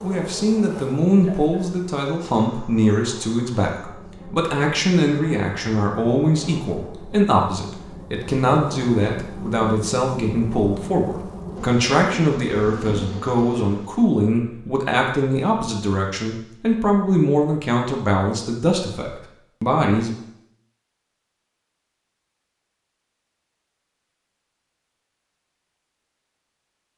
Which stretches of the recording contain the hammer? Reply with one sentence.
The hammer can't be heard in this clip.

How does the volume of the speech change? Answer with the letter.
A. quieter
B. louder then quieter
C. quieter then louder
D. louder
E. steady
E.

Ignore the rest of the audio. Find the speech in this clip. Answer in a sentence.
The speech can be heard from 0.0 to 20.1 s.